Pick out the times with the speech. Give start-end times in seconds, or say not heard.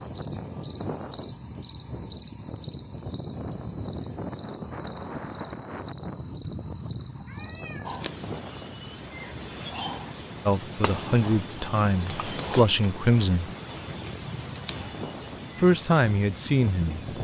10.4-13.5, 15.6-17.0.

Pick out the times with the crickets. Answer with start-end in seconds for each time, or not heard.
0.0-17.1.